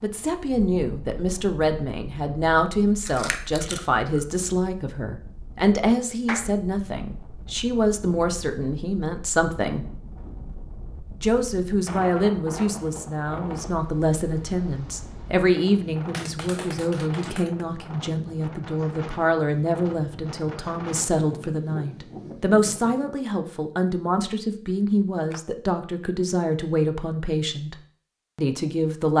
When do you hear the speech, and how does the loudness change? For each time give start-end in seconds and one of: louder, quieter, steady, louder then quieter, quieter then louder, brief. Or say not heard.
0.0-9.8 steady
11.2-27.8 steady
28.4-29.1 brief.